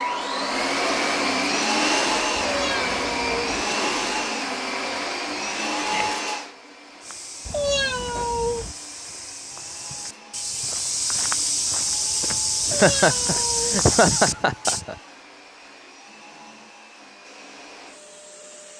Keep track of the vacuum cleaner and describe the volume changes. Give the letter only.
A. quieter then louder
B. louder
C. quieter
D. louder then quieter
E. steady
C.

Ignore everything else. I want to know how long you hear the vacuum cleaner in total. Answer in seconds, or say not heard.
19 s.